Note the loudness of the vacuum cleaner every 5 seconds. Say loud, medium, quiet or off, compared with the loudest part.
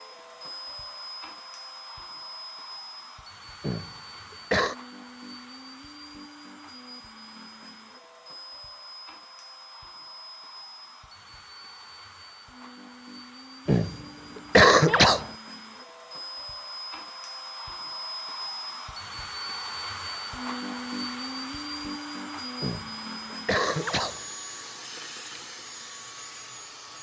medium, medium, medium, loud, loud, medium.